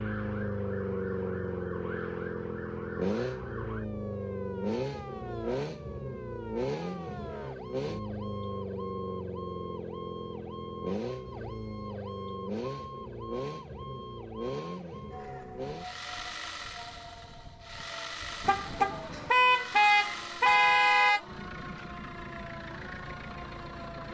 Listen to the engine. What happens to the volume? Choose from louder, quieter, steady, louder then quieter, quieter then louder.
quieter.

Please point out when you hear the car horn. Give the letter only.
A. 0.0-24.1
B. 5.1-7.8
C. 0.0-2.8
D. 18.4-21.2
D.